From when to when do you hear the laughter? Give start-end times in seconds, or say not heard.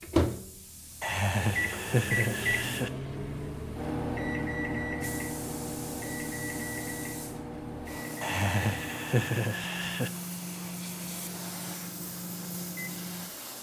1.0-2.9, 8.2-10.1.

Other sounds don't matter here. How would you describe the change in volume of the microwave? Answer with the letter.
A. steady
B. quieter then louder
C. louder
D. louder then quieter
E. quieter
E.